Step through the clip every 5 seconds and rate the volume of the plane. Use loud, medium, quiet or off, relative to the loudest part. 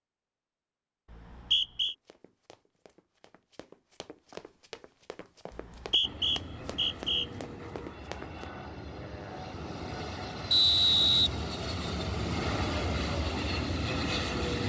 off, medium, loud.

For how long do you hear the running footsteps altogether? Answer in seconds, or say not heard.
7 s.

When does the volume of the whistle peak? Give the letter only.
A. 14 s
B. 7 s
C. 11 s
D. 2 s
C.